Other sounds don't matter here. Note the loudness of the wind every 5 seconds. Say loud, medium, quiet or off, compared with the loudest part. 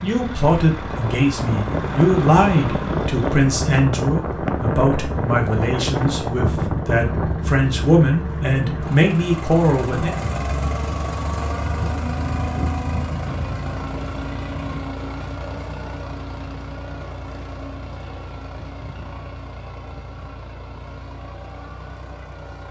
loud, loud, medium, off, off.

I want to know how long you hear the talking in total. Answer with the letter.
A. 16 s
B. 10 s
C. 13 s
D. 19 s
B.